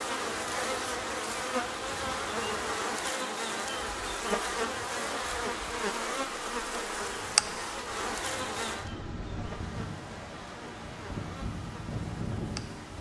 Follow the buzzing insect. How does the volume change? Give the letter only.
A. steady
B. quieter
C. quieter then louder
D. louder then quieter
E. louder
B.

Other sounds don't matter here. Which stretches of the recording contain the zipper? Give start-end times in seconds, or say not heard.
not heard.